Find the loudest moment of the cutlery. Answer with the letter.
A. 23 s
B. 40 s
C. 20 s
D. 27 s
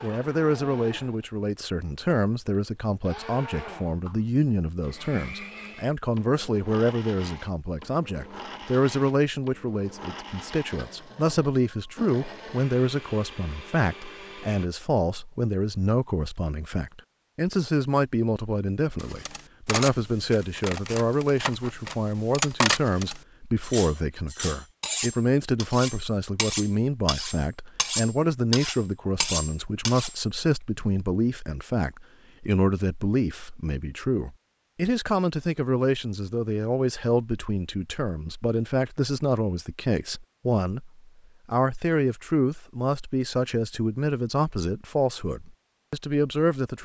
A.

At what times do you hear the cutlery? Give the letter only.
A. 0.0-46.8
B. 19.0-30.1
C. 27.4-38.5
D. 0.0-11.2
B.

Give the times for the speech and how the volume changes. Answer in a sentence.
The speech can be heard from 0.0 to 46.8 s, at a steady volume.